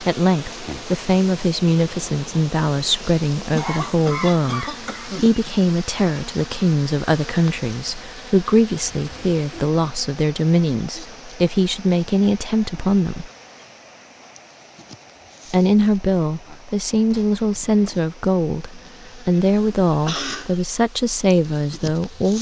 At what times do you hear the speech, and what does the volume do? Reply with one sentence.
You can hear the speech from 0.0 to 13.3 s, at a steady volume; and from 15.5 to 22.3 s, at a steady volume.